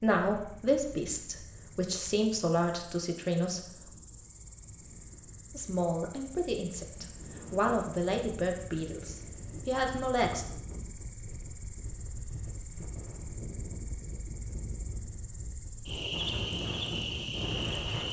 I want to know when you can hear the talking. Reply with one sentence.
You can hear the talking from 0.0 to 3.6 s and from 5.5 to 10.4 s.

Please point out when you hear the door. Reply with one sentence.
The door can't be heard in this clip.